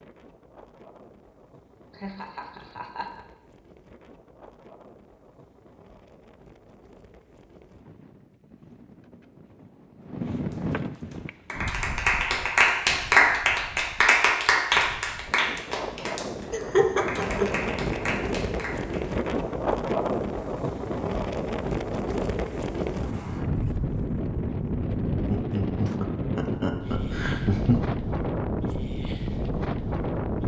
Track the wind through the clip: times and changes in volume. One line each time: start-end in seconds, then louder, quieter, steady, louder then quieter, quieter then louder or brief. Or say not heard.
0.0-30.4 louder.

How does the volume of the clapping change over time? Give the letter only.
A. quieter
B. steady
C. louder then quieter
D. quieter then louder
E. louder
A.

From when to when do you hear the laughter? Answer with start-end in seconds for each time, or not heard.
1.9-3.2, 16.5-17.7, 25.3-27.8.